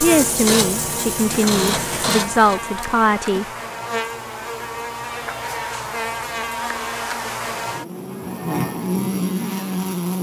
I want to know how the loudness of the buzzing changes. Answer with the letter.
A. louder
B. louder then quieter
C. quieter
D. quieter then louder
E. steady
A.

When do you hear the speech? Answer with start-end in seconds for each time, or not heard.
0.0-3.5.